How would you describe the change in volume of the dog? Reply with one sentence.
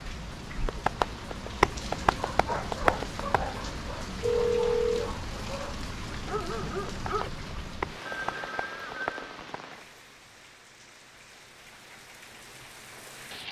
The volume of the dog goes down, then up.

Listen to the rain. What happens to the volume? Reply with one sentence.
The volume of the rain goes down.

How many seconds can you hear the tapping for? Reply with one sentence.
The tapping can be heard for 5 seconds in total.